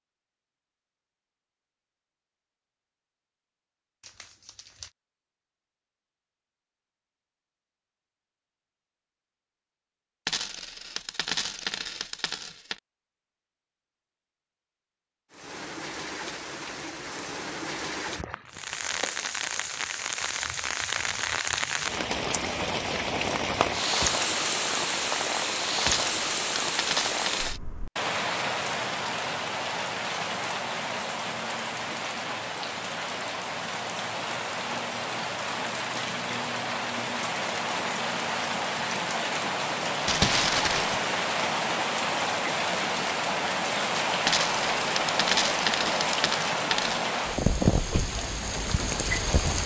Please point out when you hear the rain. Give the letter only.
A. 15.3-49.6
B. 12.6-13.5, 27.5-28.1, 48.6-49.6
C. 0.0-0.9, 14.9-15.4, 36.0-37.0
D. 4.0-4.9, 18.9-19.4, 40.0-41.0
A.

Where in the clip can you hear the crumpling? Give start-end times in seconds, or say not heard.
4.0-4.9, 18.9-19.4, 40.0-41.0.